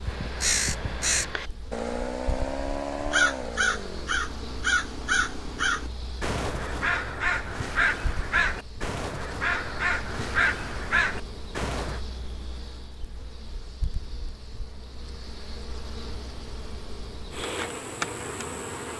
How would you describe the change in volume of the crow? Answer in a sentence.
The loudness of the crow stays about the same.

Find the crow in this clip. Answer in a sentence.
The crow can be heard from 0.0 to 12.0 s.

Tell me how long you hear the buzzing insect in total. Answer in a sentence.
The buzzing insect can be heard for 19 seconds in total.